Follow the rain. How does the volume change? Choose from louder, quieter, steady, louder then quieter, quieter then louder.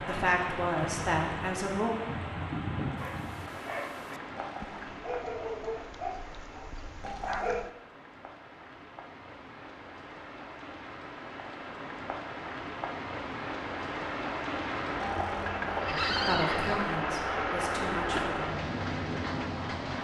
quieter then louder.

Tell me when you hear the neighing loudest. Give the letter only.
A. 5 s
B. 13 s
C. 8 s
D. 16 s
D.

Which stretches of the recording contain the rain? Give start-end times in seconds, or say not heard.
0.0-19.9.